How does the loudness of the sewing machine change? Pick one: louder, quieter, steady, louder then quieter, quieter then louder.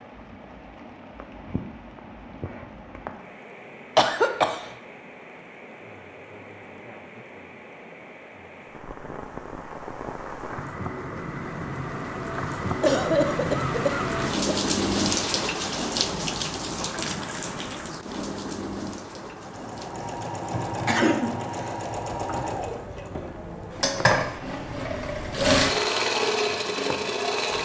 louder.